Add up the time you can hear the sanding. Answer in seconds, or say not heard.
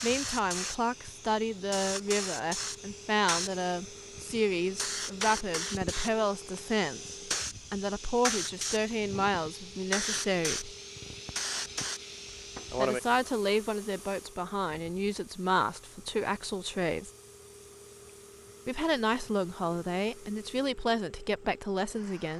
not heard.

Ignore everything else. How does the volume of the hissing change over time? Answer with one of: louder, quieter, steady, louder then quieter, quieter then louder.
quieter.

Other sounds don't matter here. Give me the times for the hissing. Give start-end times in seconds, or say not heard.
0.0-20.6.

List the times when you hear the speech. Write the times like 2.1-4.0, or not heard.
0.0-10.8, 12.8-17.1, 18.6-22.3.